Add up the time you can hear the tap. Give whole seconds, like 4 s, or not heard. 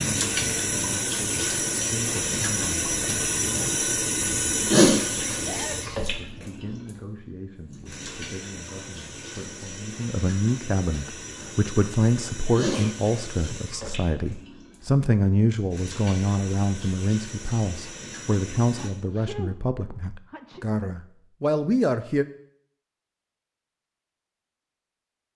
19 s.